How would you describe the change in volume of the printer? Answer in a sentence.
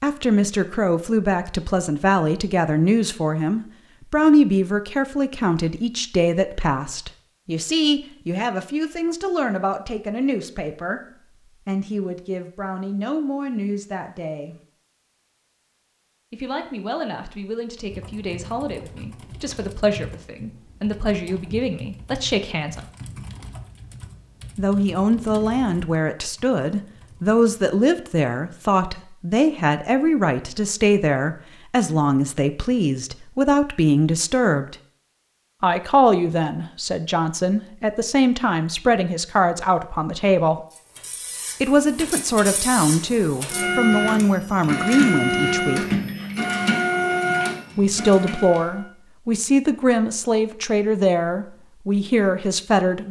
The volume of the printer goes up.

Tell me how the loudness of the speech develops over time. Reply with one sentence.
The loudness of the speech goes down, then up.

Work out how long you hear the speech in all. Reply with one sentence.
The speech can be heard for 46 seconds in total.